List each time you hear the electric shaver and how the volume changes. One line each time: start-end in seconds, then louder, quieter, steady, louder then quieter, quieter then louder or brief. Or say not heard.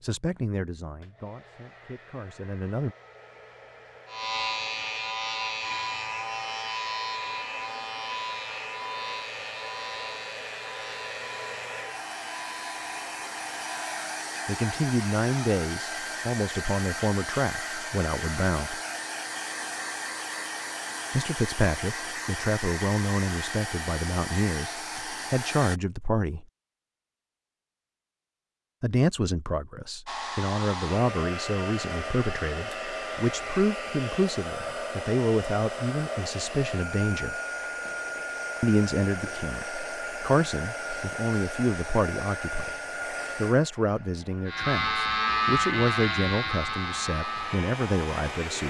4.0-14.0 quieter
44.5-48.6 quieter.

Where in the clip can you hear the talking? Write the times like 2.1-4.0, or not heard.
0.0-2.9, 14.4-18.8, 21.1-26.4, 28.8-37.4, 38.6-42.8, 43.4-48.6.